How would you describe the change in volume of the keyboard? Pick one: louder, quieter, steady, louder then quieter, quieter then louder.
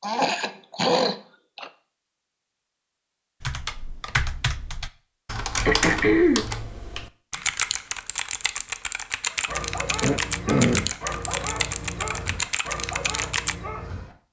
steady.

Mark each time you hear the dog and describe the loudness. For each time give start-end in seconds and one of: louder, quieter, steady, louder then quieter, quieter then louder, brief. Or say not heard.
9.2-14.2 steady.